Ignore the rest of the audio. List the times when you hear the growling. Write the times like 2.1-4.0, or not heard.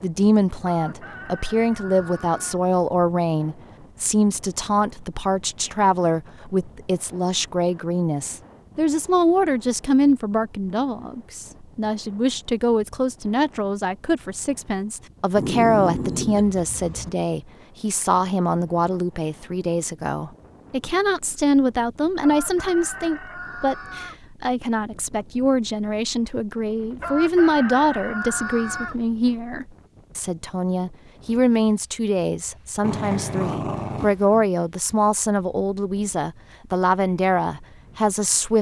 15.3-17.1, 32.8-34.5.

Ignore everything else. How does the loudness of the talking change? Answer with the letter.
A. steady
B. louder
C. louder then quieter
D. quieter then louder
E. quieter
A.